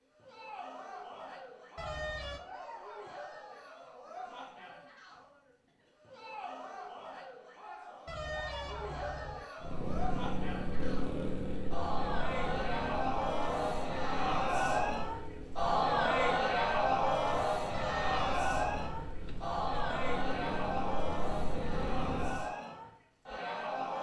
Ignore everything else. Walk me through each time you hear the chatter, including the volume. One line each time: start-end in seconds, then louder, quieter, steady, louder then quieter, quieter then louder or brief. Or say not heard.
0.1-23.9 louder then quieter.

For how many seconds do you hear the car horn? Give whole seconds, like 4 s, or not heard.
4 s.